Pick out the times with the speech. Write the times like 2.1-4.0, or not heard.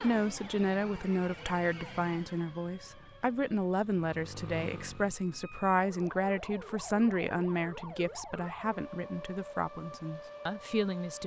0.0-11.2.